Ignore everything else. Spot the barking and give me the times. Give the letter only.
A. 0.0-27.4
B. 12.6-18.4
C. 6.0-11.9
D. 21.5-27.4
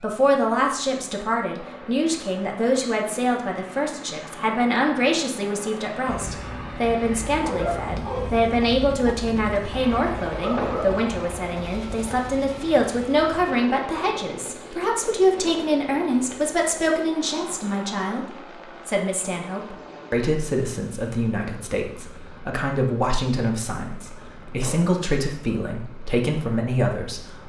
C.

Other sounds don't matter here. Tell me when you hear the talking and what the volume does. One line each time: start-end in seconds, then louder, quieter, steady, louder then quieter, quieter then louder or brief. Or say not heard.
0.0-27.4 steady.